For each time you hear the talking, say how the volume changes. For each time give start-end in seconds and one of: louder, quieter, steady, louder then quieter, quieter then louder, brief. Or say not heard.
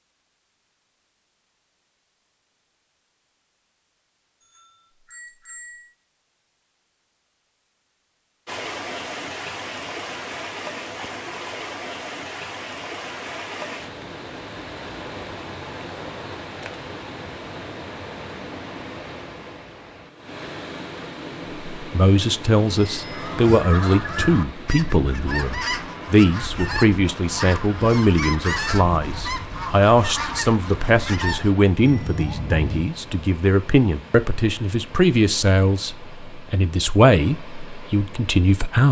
21.8-38.8 steady.